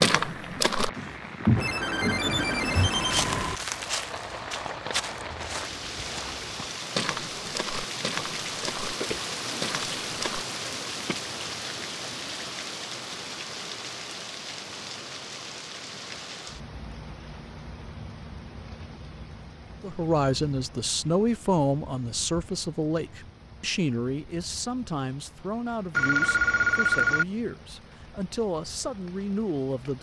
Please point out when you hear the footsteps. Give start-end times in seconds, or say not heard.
0.0-10.4.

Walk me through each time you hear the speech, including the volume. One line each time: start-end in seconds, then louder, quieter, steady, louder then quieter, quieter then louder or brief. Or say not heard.
19.8-29.9 quieter.